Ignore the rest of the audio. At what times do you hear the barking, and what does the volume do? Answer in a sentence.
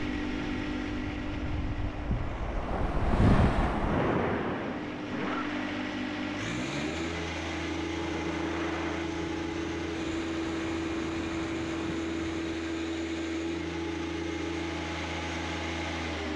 You can't hear the barking here.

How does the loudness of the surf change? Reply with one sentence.
The loudness of the surf goes up, then down.